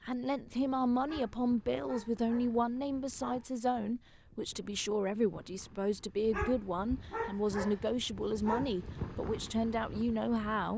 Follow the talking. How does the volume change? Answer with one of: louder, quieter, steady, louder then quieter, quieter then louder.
steady.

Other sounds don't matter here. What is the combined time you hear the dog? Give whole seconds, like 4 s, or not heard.
5 s.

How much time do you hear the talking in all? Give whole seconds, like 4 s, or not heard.
11 s.